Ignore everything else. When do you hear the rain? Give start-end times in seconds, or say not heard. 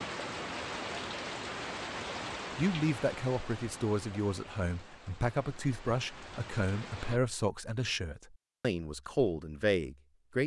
0.0-7.2.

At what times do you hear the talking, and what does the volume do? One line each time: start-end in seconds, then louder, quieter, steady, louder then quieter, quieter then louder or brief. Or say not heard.
2.5-10.4 steady.